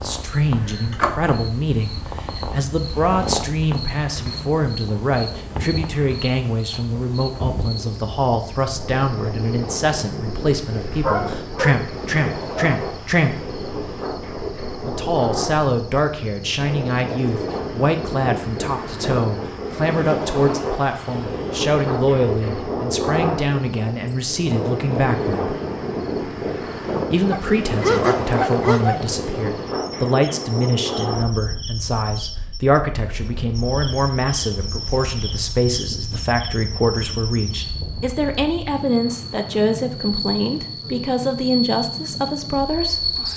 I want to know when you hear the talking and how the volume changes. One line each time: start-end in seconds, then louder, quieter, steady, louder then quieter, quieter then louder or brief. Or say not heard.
0.0-13.5 steady
14.8-25.6 steady
27.1-43.1 steady.